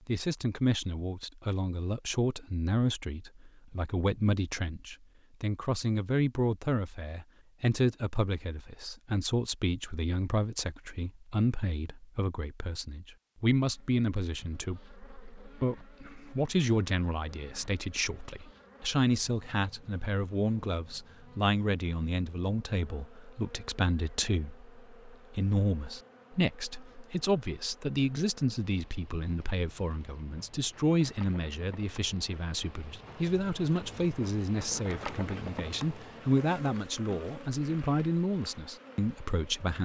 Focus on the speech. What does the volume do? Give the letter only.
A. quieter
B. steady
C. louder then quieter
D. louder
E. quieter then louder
B.